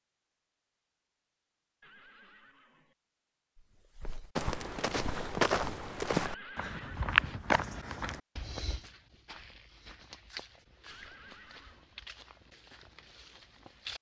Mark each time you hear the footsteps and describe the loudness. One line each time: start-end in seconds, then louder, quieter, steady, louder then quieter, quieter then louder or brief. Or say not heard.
4.0-13.9 quieter.